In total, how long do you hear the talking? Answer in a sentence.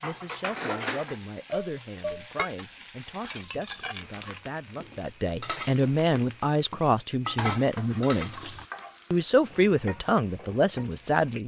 The talking can be heard for 11 seconds in total.